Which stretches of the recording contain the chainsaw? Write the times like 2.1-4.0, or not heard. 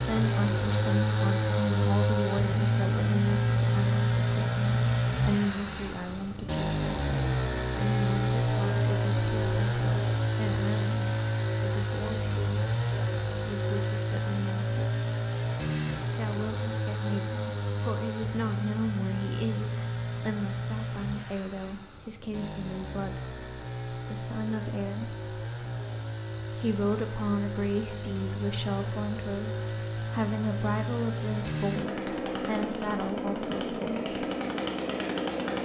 0.0-35.6.